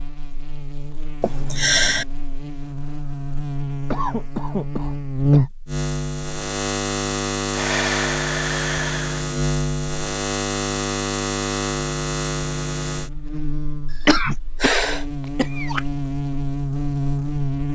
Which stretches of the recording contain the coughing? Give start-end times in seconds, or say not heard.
3.9-5.5, 14.1-15.8.